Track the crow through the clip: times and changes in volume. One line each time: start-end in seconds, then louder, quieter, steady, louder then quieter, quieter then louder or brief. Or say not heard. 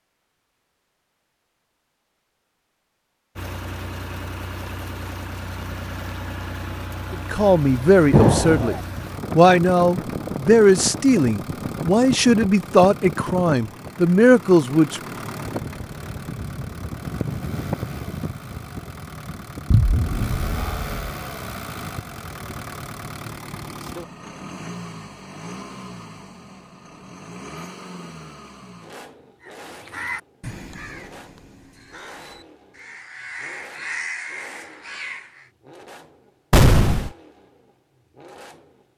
29.4-35.5 quieter then louder.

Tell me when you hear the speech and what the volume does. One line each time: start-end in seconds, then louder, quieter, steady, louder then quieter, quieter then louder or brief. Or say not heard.
7.1-15.0 steady.